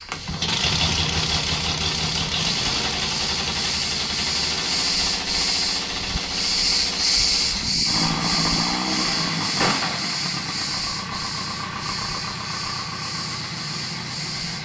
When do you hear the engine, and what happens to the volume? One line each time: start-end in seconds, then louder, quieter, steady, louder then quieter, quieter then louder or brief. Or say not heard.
0.0-14.6 quieter.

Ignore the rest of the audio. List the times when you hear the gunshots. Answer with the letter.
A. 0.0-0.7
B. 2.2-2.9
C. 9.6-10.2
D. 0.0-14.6
C.